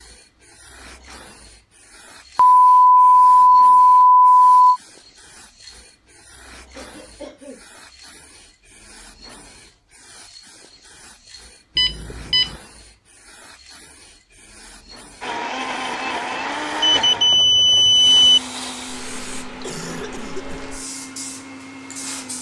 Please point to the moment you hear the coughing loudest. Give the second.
20 s.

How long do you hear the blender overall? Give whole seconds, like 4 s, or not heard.
7 s.